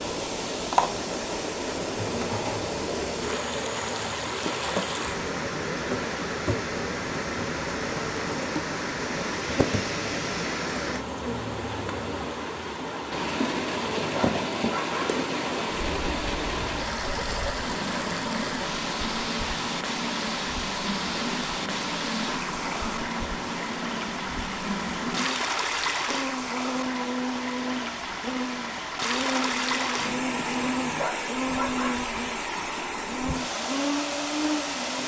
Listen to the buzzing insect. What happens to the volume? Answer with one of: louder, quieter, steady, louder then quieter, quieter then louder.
steady.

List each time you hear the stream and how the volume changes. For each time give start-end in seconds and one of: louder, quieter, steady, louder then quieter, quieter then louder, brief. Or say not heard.
0.0-35.0 steady.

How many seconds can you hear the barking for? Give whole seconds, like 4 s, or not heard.
4 s.